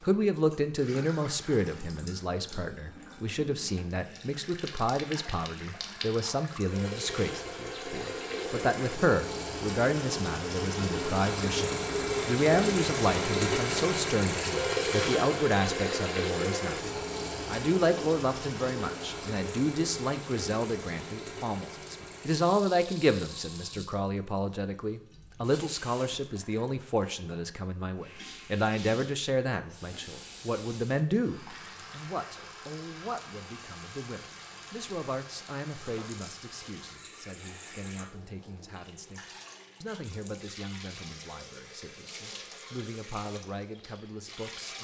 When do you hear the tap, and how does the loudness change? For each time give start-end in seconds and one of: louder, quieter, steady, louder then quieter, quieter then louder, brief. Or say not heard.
0.0-44.8 louder then quieter.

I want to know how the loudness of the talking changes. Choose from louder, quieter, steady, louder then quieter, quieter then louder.
quieter.